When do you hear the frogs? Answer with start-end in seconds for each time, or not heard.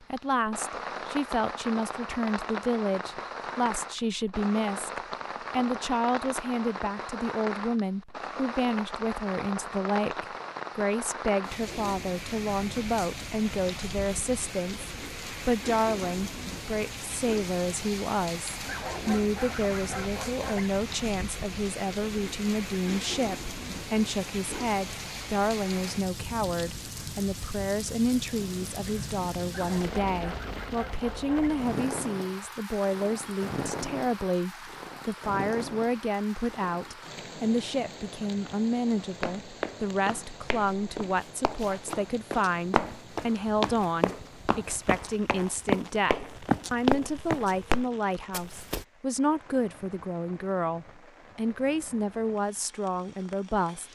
not heard.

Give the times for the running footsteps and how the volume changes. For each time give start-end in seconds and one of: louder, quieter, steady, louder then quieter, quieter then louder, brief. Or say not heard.
39.0-48.9 louder.